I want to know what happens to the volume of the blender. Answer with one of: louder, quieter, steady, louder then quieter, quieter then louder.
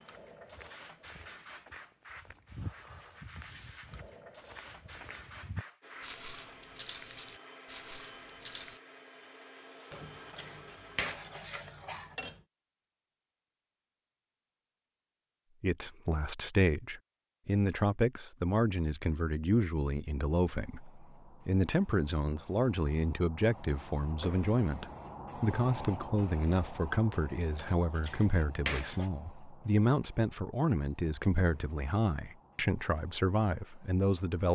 steady.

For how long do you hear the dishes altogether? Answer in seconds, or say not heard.
4 s.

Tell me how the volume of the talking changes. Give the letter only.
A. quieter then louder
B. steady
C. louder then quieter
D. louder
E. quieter
B.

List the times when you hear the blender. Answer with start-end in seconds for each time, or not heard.
5.8-11.4.